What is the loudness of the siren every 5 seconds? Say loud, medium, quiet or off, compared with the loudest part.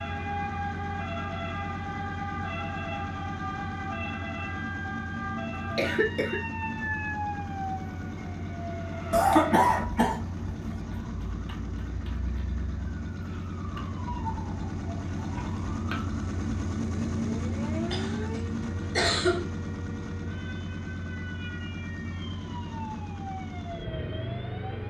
loud, loud, medium, medium, medium.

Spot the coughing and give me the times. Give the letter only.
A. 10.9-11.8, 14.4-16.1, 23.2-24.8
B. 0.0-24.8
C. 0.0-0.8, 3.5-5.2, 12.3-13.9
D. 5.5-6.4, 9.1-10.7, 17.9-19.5
D.